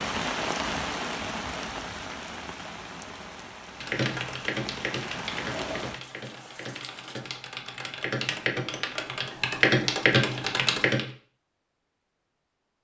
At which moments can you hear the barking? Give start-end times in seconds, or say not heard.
not heard.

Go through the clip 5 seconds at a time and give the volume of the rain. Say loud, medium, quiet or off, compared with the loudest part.
loud, medium, off.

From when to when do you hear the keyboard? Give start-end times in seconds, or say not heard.
3.8-11.1.